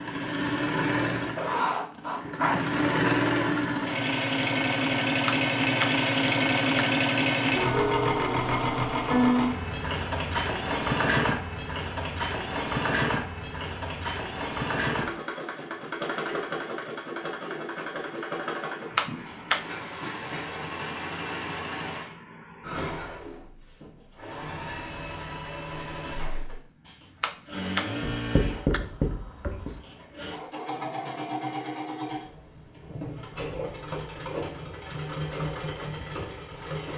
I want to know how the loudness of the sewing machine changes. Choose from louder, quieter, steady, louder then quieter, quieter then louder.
quieter.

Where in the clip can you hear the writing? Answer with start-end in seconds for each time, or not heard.
1.4-2.7, 28.0-29.8.